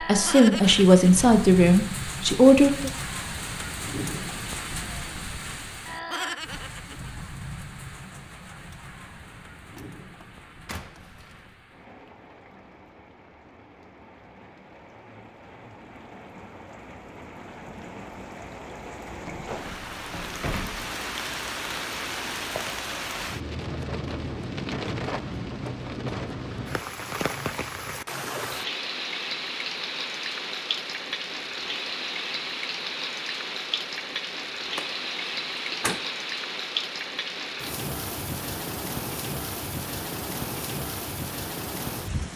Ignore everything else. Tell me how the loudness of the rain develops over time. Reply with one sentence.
The loudness of the rain goes down, then up.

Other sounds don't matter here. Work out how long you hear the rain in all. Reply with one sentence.
The rain can be heard for 42 seconds in total.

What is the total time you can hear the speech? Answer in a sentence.
The speech can be heard for 3 seconds in total.